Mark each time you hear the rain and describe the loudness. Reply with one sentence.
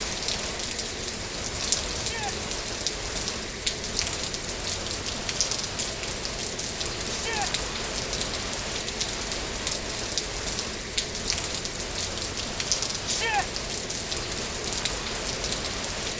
You can hear the rain from 0.0 to 16.1 s, at a steady volume.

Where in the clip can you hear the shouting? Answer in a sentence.
The shouting can be heard from 1.9 to 2.4 s, from 7.0 to 7.5 s and from 13.1 to 13.5 s.